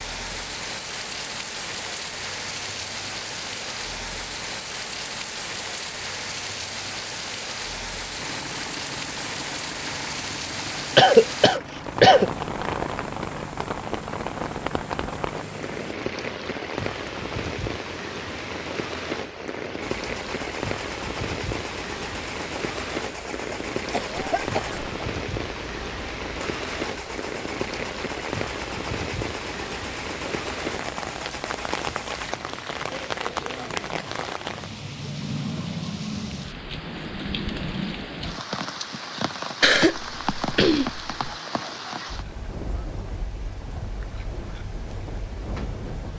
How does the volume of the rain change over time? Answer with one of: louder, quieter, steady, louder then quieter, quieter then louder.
steady.